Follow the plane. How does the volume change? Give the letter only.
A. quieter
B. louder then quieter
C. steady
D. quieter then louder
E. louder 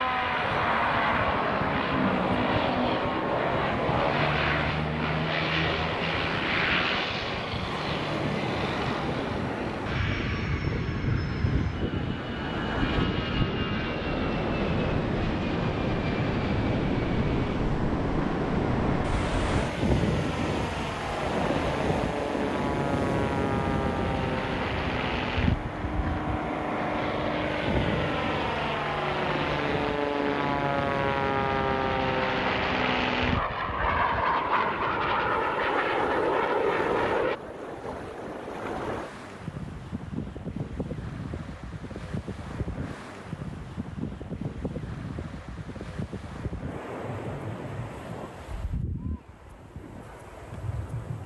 D.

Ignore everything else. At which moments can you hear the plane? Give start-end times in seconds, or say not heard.
0.0-37.4.